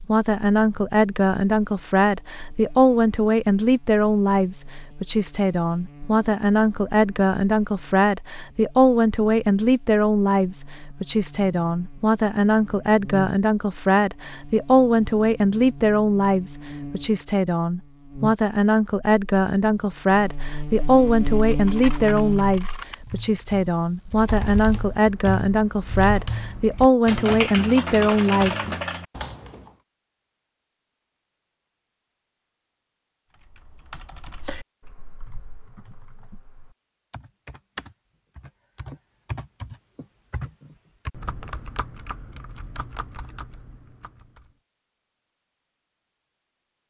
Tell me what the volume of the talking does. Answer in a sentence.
The volume of the talking stays about the same.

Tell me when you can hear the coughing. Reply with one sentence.
The coughing can't be heard in this clip.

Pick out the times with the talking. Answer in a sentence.
You can hear the talking from 0.0 to 28.6 s.